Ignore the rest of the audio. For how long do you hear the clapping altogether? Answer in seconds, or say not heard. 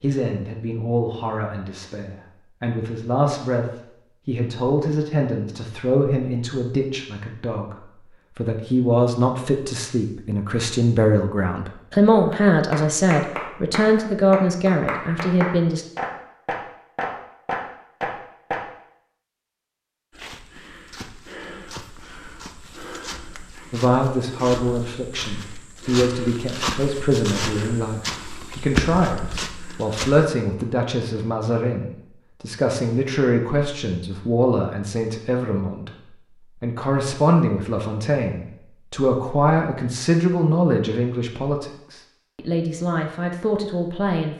6 s.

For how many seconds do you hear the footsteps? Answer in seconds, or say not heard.
10 s.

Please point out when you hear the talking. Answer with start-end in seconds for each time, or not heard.
0.0-15.8, 23.7-35.9, 36.6-44.3.